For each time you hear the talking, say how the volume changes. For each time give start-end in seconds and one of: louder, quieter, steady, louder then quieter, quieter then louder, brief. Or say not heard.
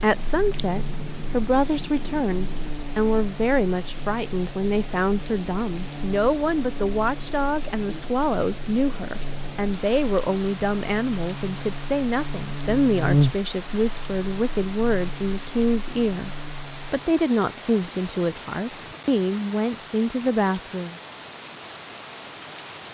0.0-21.0 steady.